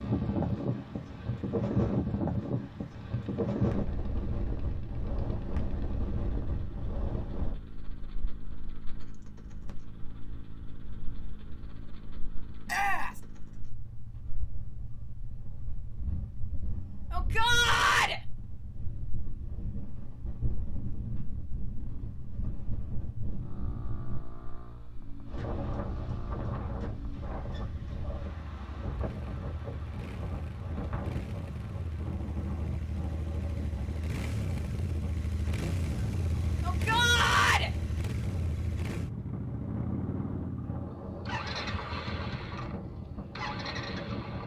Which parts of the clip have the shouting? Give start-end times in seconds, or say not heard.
12.7-13.2, 17.1-18.2, 36.6-37.7.